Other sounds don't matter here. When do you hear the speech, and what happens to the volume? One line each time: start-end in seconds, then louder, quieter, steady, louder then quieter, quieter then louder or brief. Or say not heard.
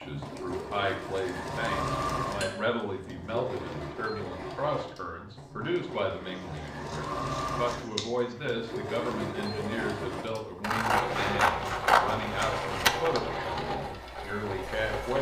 0.0-15.1 steady.